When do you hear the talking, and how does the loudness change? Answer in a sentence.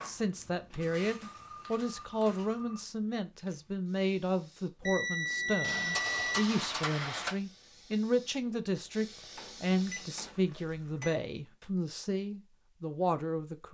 The talking can be heard from 0.0 to 13.6 s, at a steady volume.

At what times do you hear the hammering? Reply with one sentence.
The hammering can be heard from 0.7 to 2.5 s, from 5.6 to 7.4 s and from 9.2 to 11.2 s.